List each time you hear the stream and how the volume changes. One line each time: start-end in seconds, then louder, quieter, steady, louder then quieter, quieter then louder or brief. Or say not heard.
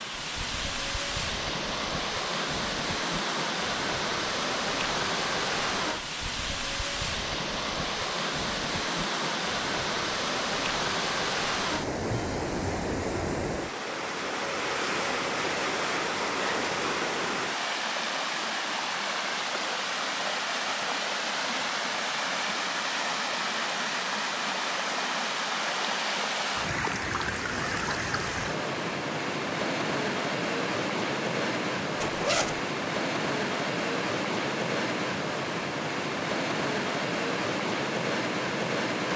0.0-39.1 steady.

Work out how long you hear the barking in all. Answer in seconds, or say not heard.
not heard.